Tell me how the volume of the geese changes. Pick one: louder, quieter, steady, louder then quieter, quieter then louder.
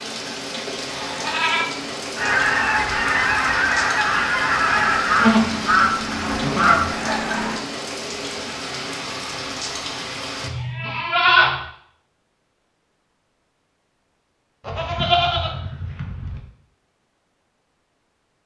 steady.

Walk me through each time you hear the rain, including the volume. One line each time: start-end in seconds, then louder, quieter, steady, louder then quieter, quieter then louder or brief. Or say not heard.
0.0-10.5 steady.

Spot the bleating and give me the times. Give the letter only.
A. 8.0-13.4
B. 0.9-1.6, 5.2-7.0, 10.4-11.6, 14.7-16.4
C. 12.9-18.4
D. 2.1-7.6
B.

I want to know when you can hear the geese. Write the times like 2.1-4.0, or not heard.
2.1-7.6.